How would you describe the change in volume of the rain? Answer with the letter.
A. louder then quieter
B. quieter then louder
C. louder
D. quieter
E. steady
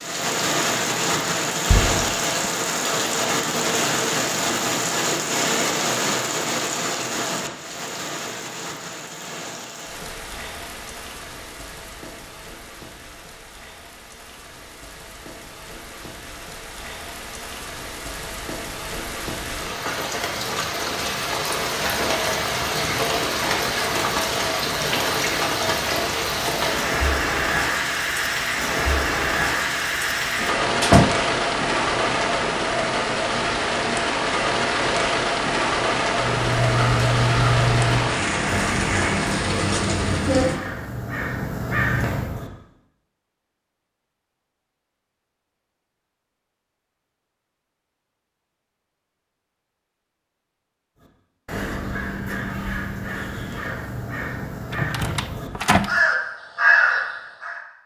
B.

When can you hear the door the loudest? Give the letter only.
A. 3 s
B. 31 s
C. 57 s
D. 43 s
B.